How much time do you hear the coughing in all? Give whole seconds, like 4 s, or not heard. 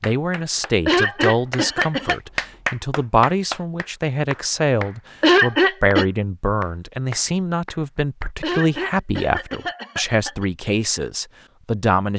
4 s.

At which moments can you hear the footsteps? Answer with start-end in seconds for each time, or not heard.
not heard.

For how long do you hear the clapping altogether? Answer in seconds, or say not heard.
8 s.